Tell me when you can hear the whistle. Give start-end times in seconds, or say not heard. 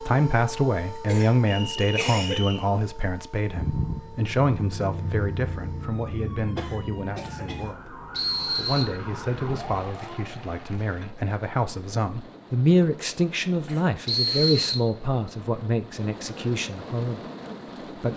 1.4-2.6, 8.1-8.8, 14.1-15.3.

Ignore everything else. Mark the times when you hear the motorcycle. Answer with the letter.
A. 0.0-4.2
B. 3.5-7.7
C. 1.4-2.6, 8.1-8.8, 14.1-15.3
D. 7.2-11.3
B.